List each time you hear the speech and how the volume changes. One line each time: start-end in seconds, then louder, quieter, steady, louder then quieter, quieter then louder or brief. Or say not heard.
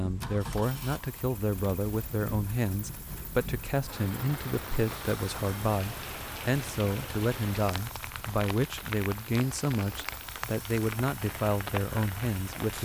0.0-12.8 steady.